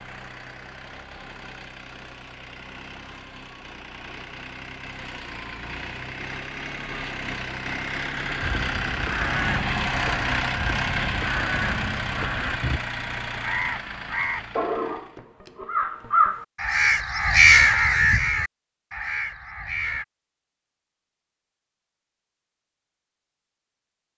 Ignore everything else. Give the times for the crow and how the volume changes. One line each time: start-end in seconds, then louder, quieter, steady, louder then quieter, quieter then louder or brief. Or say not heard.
8.4-20.1 louder.